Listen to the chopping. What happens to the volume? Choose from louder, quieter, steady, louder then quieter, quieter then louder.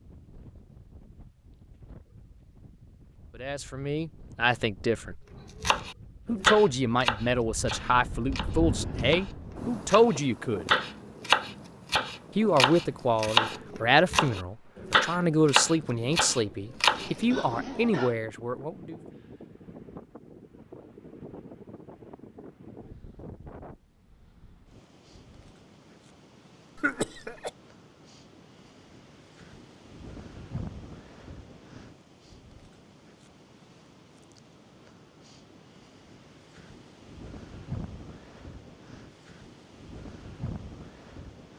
quieter then louder.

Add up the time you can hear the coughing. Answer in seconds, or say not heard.
2 s.